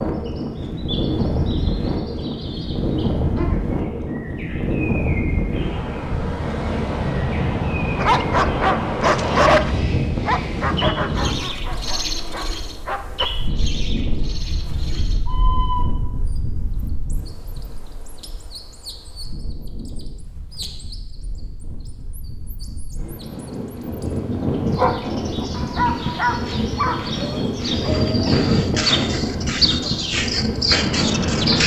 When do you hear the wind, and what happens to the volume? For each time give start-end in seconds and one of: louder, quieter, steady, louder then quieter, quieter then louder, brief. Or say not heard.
0.0-31.6 quieter then louder.